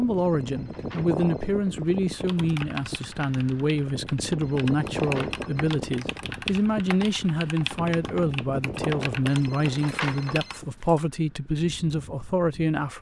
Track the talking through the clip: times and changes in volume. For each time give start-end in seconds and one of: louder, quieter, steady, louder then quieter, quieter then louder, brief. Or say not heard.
0.0-12.9 steady.